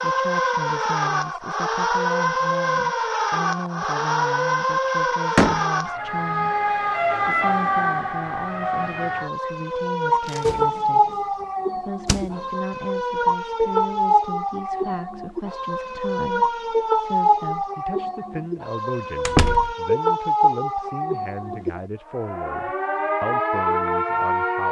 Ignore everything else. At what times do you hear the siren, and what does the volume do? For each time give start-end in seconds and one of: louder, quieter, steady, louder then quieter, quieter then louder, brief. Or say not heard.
0.0-24.6 steady.